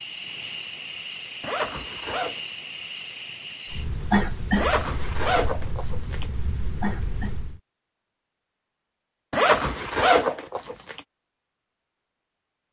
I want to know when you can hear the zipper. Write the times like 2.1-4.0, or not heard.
1.4-2.4, 4.5-6.2, 9.3-11.0.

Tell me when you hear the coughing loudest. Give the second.
4 s.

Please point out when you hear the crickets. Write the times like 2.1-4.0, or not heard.
0.0-7.6.